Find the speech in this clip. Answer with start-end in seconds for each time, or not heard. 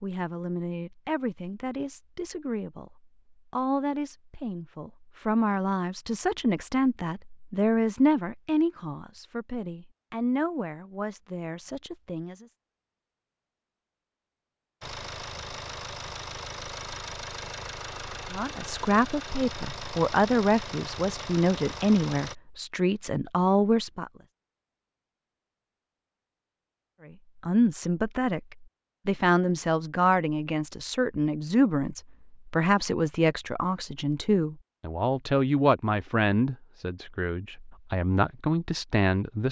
0.0-12.5, 18.3-24.1, 27.1-39.4.